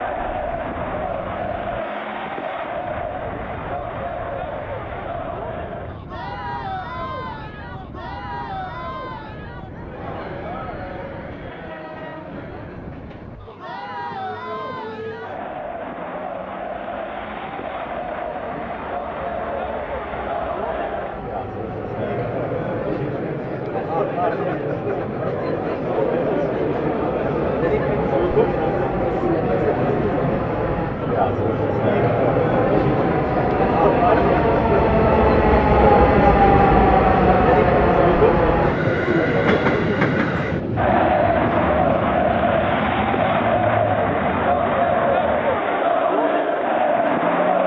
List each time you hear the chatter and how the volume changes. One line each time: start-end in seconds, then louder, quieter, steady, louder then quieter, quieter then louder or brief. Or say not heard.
0.0-47.6 louder.